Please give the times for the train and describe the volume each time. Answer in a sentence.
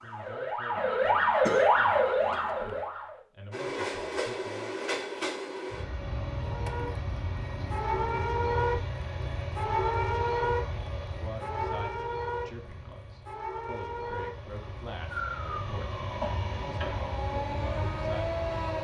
The train can be heard from 3.5 to 18.7 s, getting quieter then louder.